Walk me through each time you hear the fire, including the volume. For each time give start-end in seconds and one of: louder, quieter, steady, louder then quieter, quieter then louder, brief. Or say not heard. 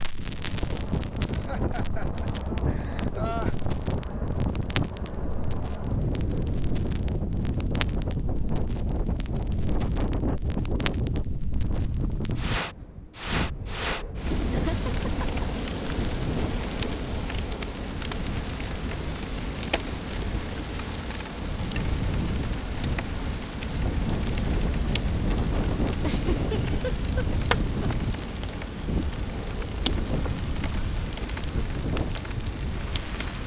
0.0-33.4 louder.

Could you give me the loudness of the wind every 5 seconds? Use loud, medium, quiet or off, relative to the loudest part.
loud, loud, loud, medium, loud, loud, medium.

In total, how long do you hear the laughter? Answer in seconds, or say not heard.
5 s.